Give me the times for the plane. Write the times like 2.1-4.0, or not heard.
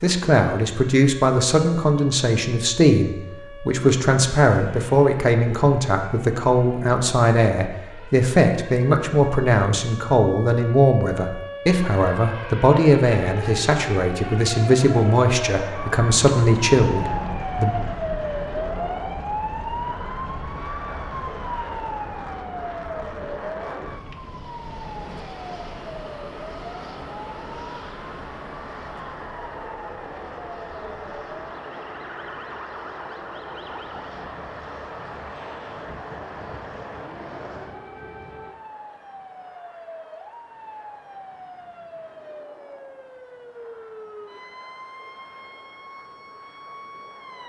15.6-47.4.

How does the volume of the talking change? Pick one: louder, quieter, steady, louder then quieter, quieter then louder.
steady.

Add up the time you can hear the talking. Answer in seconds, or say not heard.
18 s.